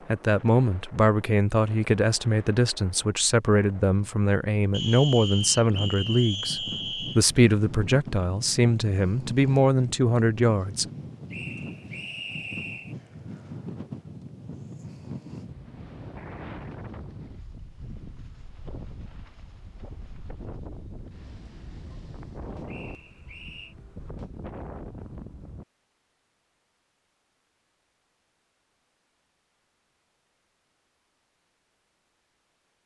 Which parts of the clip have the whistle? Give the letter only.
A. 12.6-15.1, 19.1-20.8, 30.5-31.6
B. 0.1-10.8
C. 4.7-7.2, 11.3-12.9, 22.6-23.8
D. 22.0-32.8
C.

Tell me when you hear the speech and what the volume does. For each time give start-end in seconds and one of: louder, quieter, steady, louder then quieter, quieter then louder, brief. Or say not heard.
0.1-10.8 steady.